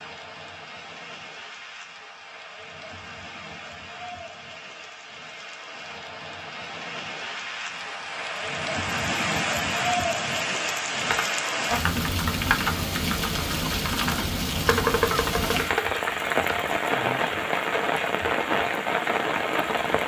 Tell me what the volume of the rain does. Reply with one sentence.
The loudness of the rain goes up.